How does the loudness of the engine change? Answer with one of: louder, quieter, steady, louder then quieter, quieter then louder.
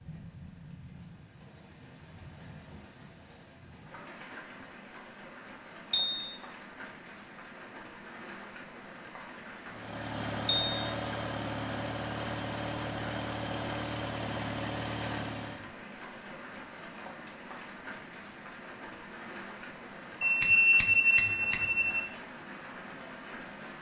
steady.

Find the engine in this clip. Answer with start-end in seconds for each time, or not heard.
9.7-15.8.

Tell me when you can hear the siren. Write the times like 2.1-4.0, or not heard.
not heard.